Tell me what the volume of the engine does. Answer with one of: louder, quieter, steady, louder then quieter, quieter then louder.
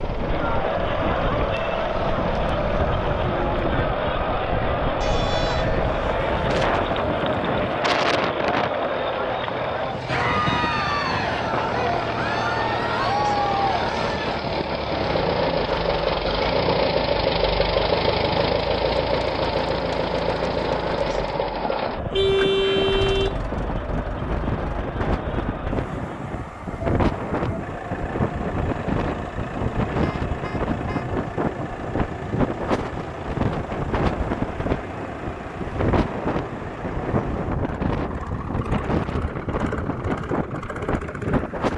louder then quieter.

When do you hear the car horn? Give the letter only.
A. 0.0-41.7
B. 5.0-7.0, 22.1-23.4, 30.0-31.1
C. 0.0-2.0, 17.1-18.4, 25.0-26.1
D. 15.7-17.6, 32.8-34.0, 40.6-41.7
B.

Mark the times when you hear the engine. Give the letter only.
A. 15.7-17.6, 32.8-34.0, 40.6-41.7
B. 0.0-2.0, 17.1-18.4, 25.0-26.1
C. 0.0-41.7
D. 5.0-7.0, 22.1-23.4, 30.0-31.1
C.